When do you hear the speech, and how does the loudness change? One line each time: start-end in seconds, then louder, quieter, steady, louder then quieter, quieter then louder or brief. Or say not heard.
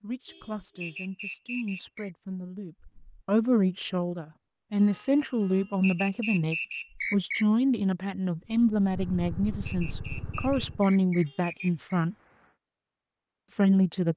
0.0-12.2 louder
13.6-14.1 brief.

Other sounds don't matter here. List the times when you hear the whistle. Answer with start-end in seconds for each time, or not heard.
0.8-2.1, 5.8-7.5, 9.7-12.1.